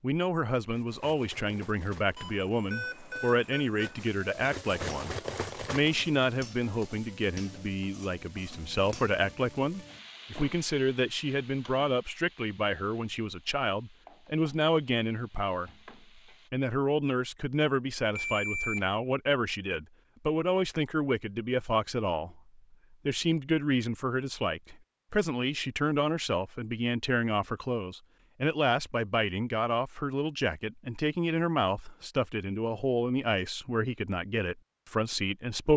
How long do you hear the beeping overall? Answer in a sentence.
You can hear the beeping for 3 seconds altogether.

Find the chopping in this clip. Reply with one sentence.
You can't hear the chopping here.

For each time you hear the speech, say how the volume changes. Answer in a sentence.
You can hear the speech from 0.0 to 15.7 s, at a steady volume; and from 16.5 to 35.7 s, at a steady volume.